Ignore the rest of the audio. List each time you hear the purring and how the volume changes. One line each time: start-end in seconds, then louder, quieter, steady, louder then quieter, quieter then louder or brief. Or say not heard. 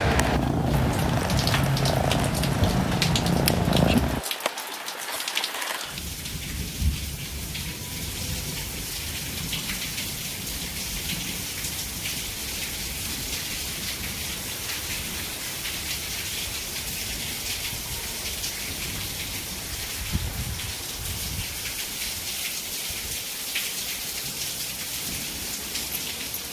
0.0-4.2 steady.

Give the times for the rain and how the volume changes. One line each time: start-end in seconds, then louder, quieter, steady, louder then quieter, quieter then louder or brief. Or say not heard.
0.0-26.4 steady.